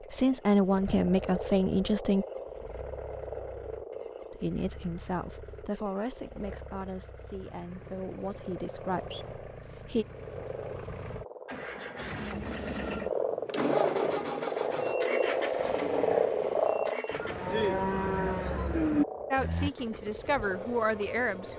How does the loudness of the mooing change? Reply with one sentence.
The loudness of the mooing goes up.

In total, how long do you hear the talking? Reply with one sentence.
You can hear the talking for 10 seconds altogether.